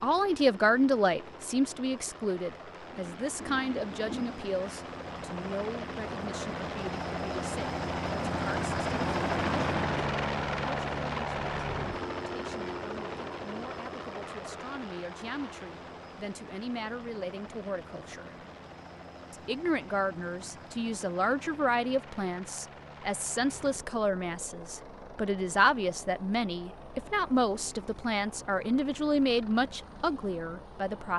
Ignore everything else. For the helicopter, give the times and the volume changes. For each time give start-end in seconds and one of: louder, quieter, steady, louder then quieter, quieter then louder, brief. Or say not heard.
0.0-31.1 louder then quieter.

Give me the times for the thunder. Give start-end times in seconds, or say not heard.
2.9-4.5.